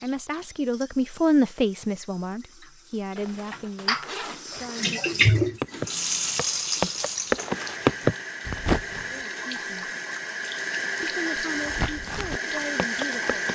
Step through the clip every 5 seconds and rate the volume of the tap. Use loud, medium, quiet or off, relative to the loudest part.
medium, loud, loud.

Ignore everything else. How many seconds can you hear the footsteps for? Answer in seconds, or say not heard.
6 s.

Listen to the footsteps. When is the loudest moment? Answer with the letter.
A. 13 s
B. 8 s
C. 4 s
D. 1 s
B.